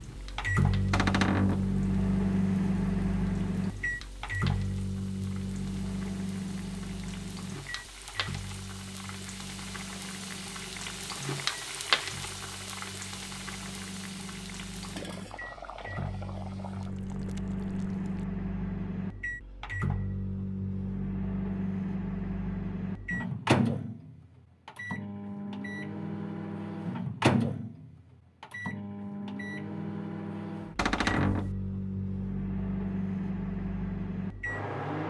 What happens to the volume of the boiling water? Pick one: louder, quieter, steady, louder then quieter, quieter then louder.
louder then quieter.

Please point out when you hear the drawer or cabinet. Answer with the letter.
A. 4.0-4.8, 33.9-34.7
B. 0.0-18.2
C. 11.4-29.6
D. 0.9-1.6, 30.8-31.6
D.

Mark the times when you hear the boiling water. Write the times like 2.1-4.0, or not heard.
0.0-18.2.